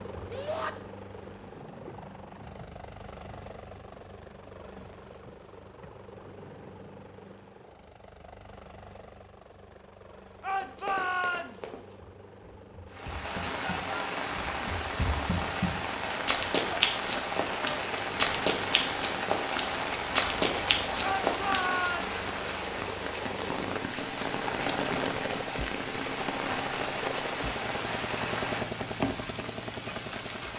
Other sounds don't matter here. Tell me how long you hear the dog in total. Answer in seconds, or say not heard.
not heard.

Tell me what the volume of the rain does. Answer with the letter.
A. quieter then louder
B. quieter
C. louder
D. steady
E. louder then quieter
D.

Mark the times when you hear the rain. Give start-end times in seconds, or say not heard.
12.9-30.5.